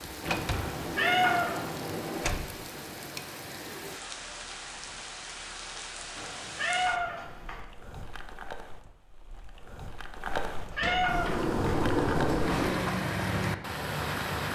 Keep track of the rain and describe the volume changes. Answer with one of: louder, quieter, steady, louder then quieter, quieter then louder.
louder.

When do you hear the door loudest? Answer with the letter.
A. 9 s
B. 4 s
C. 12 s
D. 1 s
C.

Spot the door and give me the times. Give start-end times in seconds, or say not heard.
0.2-2.5, 10.8-12.9.